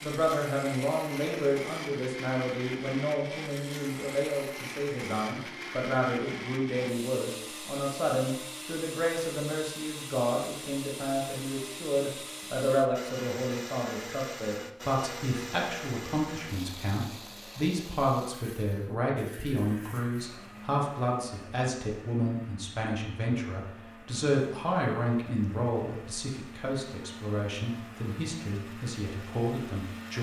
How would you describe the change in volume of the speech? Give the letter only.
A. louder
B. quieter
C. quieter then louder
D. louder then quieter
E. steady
E.